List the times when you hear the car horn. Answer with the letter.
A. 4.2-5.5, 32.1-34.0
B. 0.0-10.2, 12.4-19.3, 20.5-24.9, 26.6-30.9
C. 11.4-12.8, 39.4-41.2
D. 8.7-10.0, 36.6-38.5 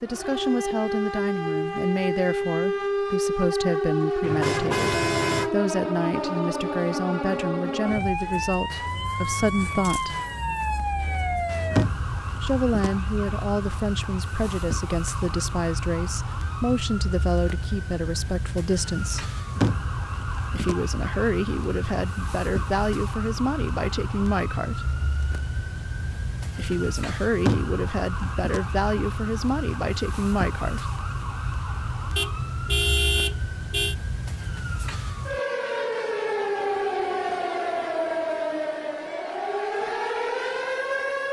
A.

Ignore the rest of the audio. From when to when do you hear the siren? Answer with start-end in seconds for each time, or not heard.
0.0-41.2.